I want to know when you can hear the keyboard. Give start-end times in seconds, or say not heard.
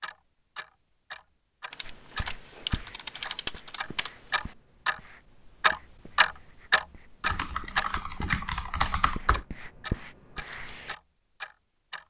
1.7-4.5, 7.2-9.4.